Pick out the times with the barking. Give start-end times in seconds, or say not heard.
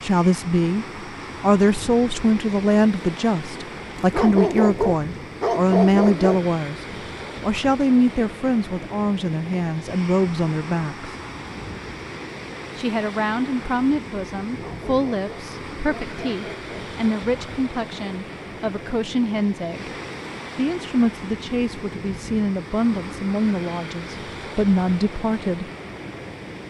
4.0-6.5, 14.4-16.9.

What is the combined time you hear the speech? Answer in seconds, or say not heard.
23 s.